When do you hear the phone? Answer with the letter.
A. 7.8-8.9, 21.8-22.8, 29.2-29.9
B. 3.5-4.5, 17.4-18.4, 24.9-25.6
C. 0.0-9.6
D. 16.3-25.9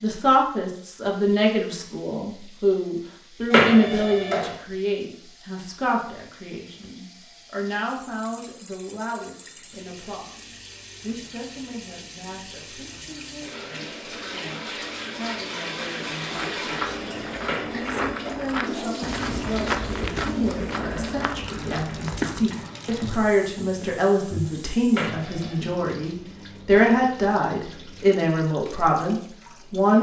B.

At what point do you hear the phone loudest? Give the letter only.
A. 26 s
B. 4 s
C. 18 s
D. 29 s
B.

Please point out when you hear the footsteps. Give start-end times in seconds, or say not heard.
16.3-25.9.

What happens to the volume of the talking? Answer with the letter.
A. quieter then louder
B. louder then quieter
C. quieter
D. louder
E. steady
A.